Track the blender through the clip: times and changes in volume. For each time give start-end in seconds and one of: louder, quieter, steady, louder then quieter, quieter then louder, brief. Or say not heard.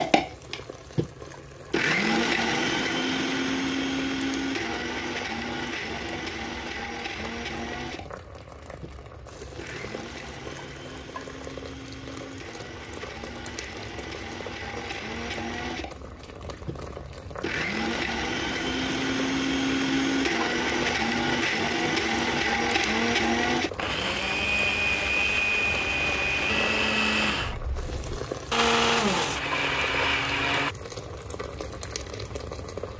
0.0-30.8 quieter then louder.